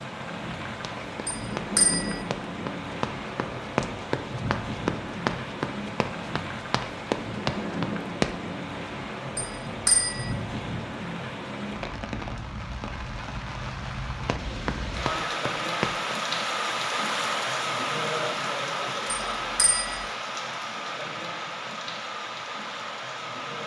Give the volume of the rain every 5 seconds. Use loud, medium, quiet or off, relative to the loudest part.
medium, medium, medium, loud, medium.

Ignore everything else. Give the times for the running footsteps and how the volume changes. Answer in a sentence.
You can hear the running footsteps from 0.8 to 8.3 s, getting louder; and briefly from 14.2 to 16.1 s.